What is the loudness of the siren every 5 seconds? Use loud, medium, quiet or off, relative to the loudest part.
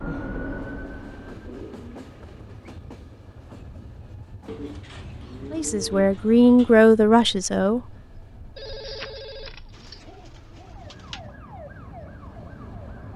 loud, quiet, medium.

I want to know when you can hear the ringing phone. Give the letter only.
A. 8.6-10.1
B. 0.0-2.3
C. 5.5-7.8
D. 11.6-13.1
A.